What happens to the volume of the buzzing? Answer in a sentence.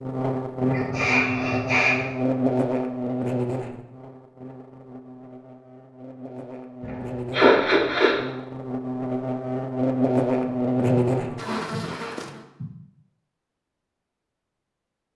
The loudness of the buzzing goes down, then up.